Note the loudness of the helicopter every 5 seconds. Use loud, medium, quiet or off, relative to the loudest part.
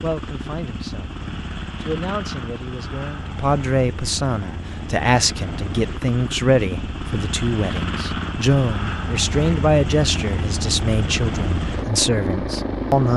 medium, loud, loud.